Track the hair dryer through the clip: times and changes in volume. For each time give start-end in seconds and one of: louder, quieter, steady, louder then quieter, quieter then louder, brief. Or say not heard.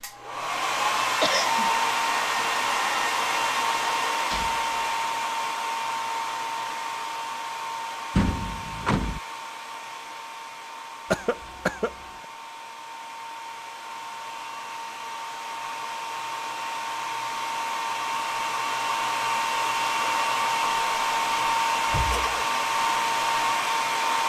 0.0-24.2 quieter then louder.